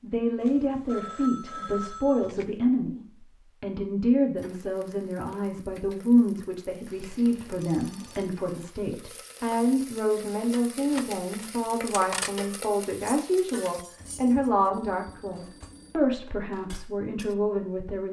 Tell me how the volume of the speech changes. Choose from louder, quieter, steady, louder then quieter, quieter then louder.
steady.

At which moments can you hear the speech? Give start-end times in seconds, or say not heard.
0.0-18.0.